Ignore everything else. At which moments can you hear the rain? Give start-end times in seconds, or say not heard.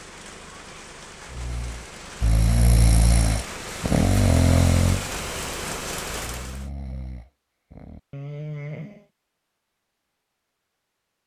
0.0-6.7.